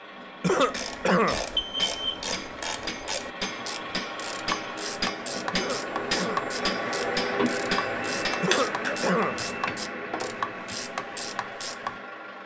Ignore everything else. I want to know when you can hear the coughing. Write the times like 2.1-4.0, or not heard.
0.4-1.4, 5.5-6.5, 8.4-9.4.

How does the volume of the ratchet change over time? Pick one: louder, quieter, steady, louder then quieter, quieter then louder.
steady.